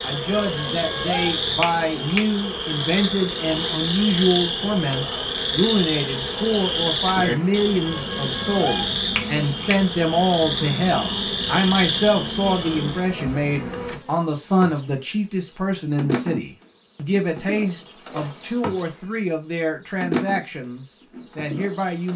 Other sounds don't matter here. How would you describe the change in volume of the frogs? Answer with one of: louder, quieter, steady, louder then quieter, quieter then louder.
steady.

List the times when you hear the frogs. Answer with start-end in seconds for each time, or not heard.
0.0-13.1.